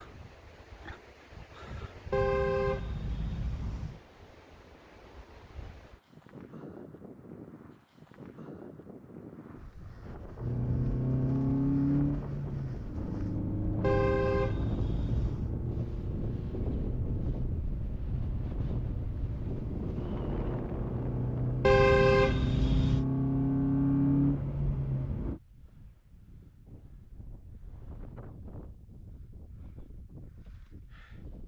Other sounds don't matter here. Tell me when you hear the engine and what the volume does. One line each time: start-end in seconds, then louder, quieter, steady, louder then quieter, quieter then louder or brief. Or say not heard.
10.3-25.4 quieter then louder.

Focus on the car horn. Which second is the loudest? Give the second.
22 s.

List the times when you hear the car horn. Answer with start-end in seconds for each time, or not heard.
2.1-4.0, 13.8-15.5, 21.6-23.1.